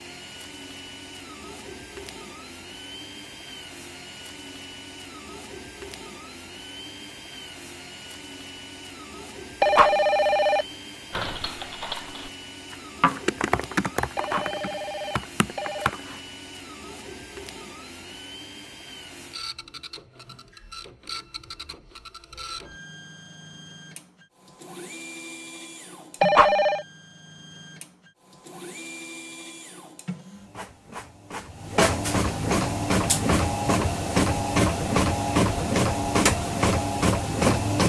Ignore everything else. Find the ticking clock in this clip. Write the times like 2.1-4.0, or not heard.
not heard.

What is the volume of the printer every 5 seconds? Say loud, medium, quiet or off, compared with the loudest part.
quiet, quiet, quiet, quiet, quiet, quiet, loud, loud.